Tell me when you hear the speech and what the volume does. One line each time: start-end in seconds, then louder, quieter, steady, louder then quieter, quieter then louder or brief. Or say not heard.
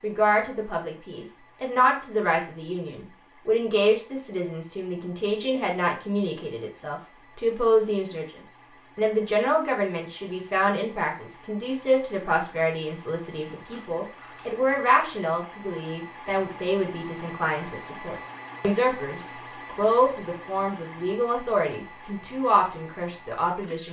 0.0-23.8 steady.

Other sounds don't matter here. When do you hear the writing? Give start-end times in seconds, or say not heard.
not heard.